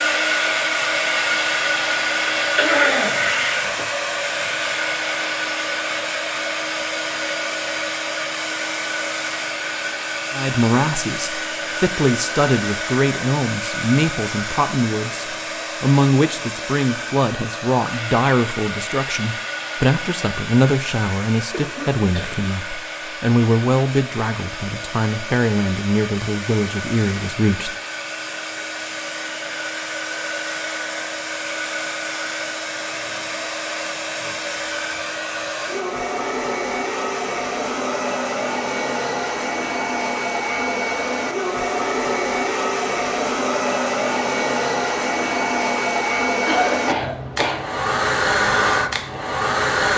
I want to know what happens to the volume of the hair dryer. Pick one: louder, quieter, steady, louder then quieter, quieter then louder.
quieter then louder.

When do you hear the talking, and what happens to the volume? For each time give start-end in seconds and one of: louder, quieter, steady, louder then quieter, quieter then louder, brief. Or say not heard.
10.3-27.7 steady.